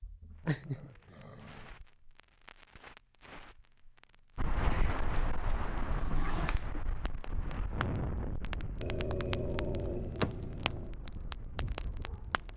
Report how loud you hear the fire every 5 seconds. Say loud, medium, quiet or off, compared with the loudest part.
quiet, medium, loud.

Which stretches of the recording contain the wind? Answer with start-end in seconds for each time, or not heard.
4.3-12.5.